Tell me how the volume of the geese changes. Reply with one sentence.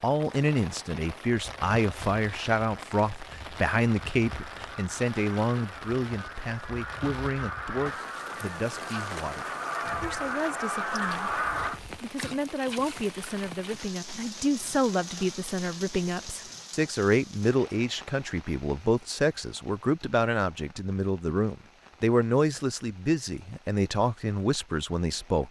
The loudness of the geese goes up.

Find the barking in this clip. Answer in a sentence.
You can't hear the barking here.